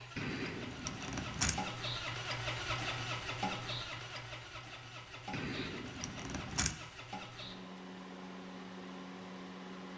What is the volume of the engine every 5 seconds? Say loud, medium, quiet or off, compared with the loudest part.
loud, medium.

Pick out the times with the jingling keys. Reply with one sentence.
You can hear the jingling keys from 0.1 to 1.6 s and from 5.3 to 6.8 s.